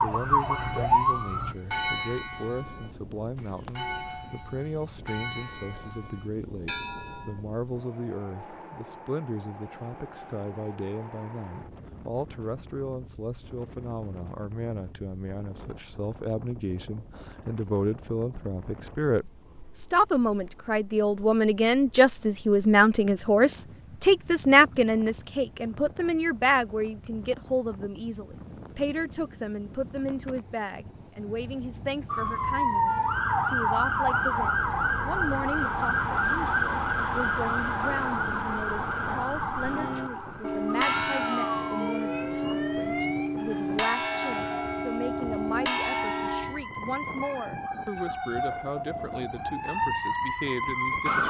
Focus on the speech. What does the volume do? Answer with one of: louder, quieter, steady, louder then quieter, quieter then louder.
louder then quieter.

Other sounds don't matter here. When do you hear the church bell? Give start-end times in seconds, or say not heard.
0.4-7.4, 39.5-46.6.